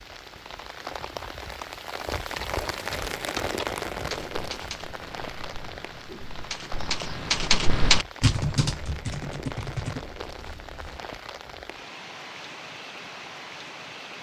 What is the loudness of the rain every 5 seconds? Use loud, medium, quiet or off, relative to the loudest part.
loud, medium, medium.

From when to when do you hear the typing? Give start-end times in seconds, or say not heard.
2.2-11.0.